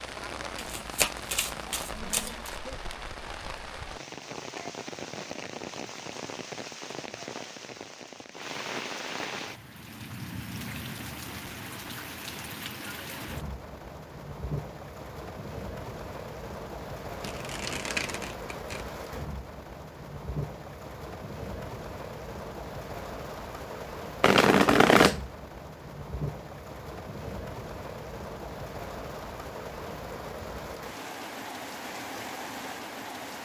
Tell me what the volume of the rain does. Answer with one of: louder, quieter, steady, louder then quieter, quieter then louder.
steady.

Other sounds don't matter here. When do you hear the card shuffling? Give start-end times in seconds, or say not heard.
0.6-2.5, 17.2-18.9, 24.2-25.2.